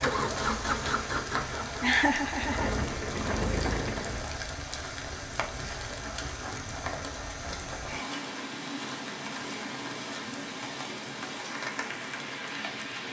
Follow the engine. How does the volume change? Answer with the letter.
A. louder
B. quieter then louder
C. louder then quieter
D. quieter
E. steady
B.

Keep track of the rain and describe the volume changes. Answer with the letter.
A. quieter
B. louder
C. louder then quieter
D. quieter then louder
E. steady
E.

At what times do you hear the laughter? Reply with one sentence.
The laughter can be heard from 1.8 to 2.7 s.